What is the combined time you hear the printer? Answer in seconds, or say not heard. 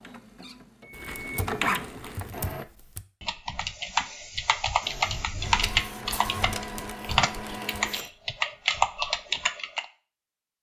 6 s.